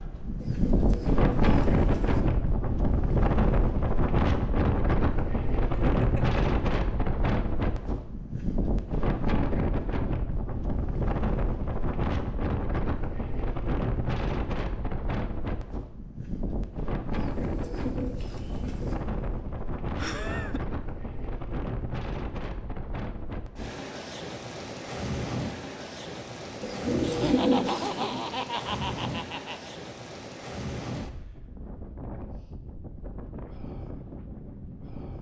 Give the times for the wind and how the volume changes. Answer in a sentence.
The wind can be heard from 0.0 to 35.1 s, getting quieter.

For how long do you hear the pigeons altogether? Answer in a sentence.
The pigeons can be heard for 5 seconds in total.